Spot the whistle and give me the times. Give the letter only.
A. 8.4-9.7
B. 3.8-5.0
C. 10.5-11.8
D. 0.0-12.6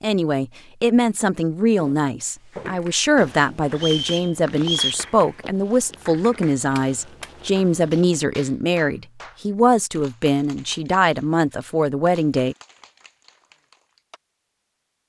B.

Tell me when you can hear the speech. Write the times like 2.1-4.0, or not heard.
0.0-12.6.